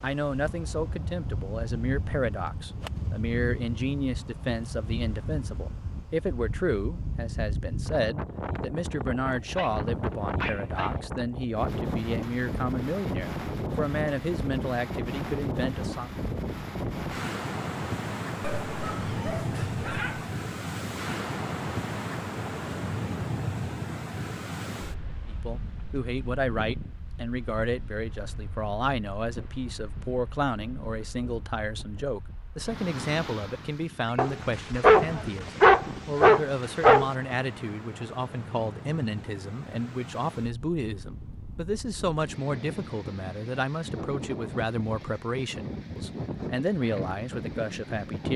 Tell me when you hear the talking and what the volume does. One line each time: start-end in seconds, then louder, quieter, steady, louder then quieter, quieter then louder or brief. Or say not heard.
0.0-16.1 steady
25.3-48.3 steady.